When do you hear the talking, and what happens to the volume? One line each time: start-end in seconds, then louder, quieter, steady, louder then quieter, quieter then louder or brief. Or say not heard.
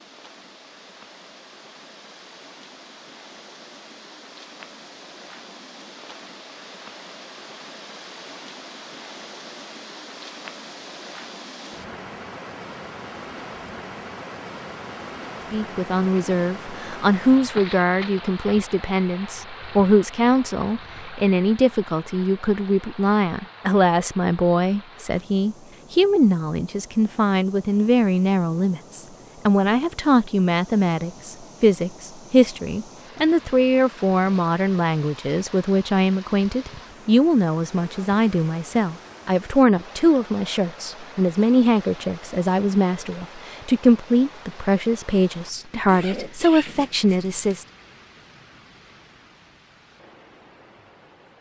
15.5-47.6 steady.